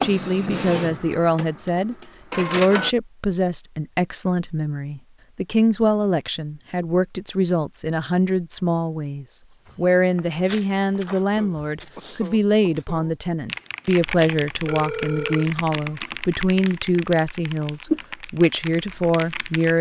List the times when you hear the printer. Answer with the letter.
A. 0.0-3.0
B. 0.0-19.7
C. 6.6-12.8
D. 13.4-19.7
A.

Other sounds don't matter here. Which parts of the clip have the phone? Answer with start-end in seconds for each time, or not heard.
14.3-15.5.